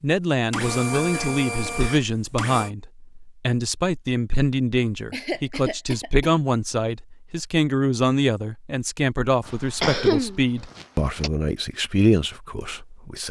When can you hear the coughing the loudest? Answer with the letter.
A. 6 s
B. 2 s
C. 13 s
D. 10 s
D.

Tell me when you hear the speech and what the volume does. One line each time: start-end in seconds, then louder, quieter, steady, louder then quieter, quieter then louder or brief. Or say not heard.
0.0-13.2 steady.